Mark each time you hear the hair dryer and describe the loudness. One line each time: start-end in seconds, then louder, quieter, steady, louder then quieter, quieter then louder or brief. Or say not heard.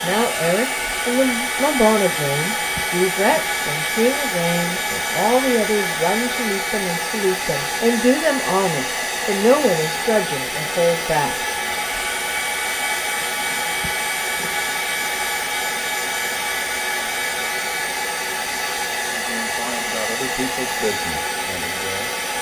0.0-22.3 steady.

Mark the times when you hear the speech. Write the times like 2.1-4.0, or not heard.
0.0-11.3, 19.1-22.1.